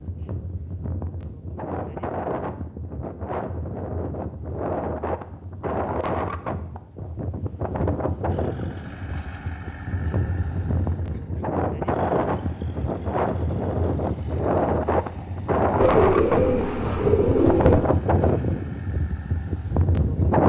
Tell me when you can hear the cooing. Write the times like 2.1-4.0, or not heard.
15.8-17.8.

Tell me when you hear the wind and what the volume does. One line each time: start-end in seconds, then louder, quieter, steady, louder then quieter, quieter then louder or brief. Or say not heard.
0.0-20.4 louder.